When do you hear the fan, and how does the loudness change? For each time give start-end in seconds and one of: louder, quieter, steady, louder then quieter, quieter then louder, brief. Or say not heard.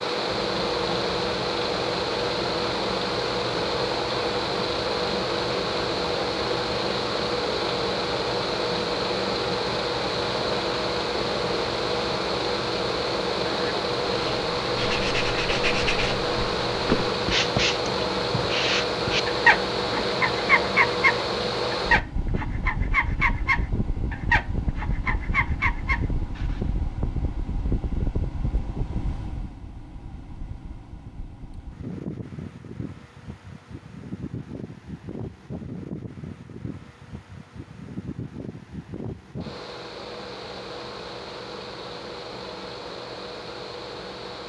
0.0-44.4 quieter.